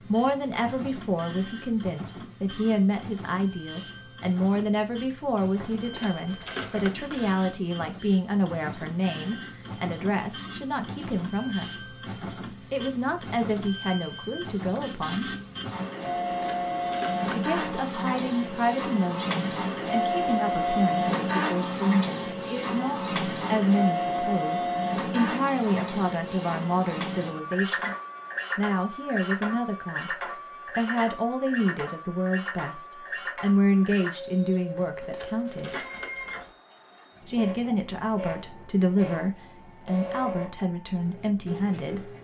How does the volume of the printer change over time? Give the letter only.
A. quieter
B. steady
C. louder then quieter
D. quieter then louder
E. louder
C.